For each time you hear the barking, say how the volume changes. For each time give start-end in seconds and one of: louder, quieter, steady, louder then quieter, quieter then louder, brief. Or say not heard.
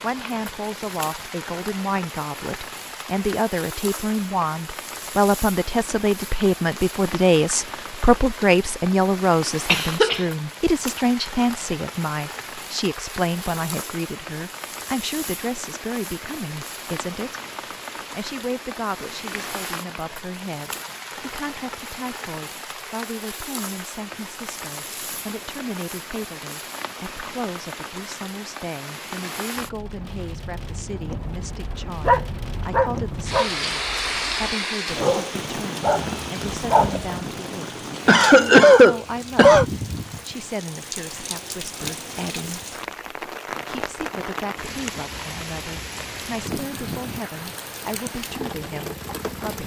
30.9-37.2 quieter then louder.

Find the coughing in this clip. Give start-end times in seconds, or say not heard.
9.7-10.2, 38.0-39.6.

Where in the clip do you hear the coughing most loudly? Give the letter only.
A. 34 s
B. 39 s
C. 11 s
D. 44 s
B.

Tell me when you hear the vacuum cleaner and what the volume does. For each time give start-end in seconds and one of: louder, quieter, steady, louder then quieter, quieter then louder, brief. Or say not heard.
not heard.